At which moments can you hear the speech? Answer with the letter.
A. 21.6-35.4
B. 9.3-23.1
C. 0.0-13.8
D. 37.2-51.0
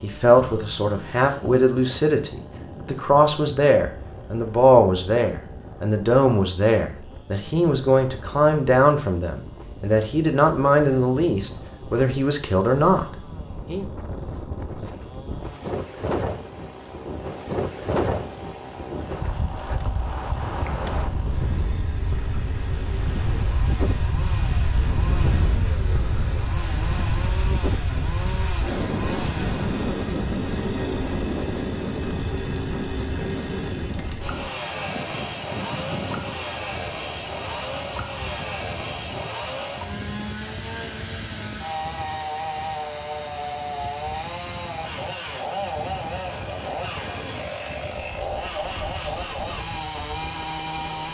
C.